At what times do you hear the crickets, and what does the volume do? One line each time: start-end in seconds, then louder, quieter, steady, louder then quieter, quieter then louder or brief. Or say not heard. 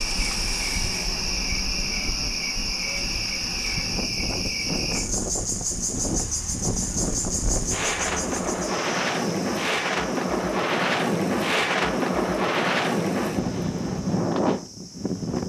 0.0-15.4 quieter.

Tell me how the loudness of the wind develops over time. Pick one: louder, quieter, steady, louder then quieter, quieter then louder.
louder.